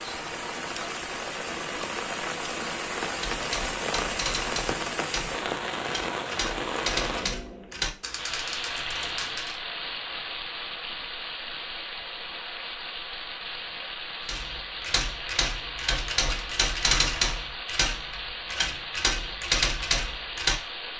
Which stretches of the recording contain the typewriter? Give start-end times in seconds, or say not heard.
3.1-9.6, 14.2-20.6.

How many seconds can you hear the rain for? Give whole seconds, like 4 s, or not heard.
21 s.